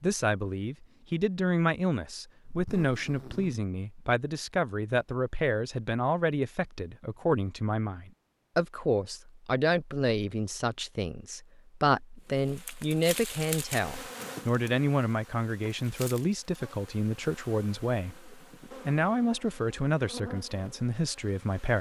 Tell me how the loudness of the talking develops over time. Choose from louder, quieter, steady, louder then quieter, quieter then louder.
steady.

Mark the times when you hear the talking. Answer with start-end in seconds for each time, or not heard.
0.0-21.7.